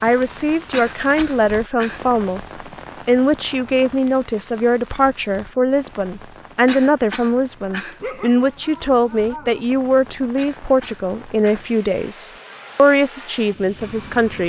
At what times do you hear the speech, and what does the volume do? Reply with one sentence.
The speech can be heard briefly from 0.0 to 2.5 s; and from 3.0 to 14.4 s, at a steady volume.